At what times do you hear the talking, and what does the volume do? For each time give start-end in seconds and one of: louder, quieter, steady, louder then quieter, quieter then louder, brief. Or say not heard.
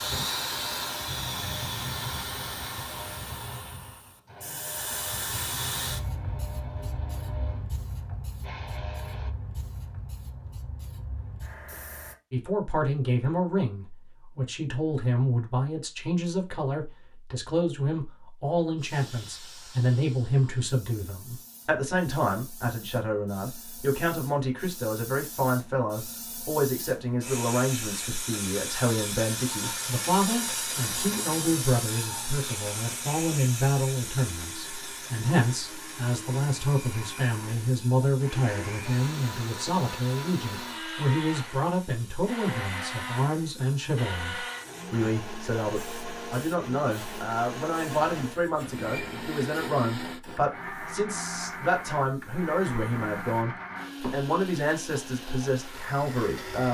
12.3-56.7 steady.